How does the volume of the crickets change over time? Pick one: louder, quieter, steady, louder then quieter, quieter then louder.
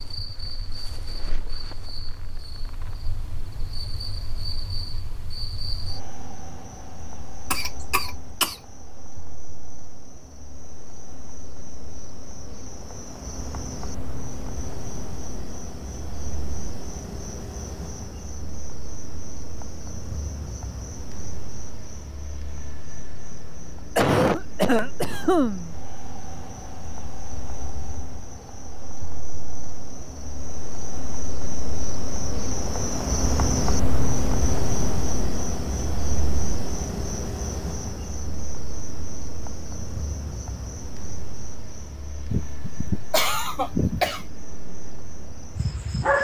louder then quieter.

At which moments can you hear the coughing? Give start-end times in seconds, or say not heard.
7.5-8.6, 23.9-25.8, 42.3-44.2.